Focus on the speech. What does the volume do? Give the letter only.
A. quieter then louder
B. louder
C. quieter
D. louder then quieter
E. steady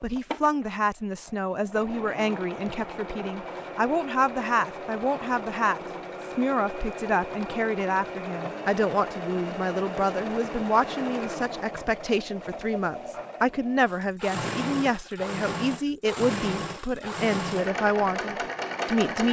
E.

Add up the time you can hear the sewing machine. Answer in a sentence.
You can hear the sewing machine for 19 seconds altogether.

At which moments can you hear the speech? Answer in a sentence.
You can hear the speech from 0.0 to 19.2 s.